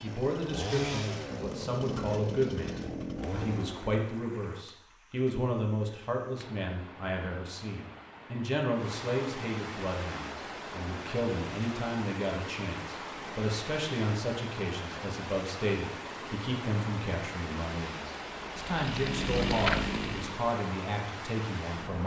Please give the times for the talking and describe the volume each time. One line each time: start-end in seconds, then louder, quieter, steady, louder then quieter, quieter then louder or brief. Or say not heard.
0.0-22.0 steady.